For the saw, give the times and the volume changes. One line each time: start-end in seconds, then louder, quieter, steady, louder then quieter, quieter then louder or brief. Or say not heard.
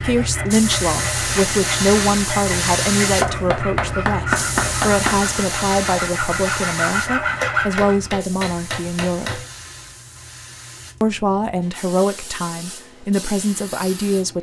0.0-8.1 louder.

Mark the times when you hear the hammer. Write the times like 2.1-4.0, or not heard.
3.2-5.2, 7.4-9.6.